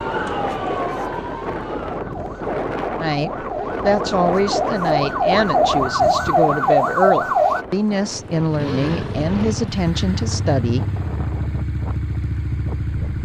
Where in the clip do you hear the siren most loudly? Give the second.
7 s.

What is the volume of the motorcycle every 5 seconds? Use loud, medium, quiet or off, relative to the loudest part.
off, loud, loud.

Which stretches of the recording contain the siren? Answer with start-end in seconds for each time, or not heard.
0.0-7.7.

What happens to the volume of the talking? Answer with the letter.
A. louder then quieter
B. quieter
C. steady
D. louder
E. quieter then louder
C.